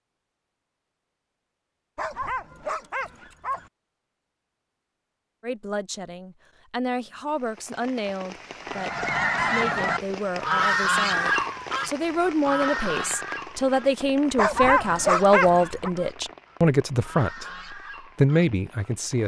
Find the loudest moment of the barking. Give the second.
15 s.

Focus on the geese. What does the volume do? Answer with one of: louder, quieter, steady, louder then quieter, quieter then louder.
quieter.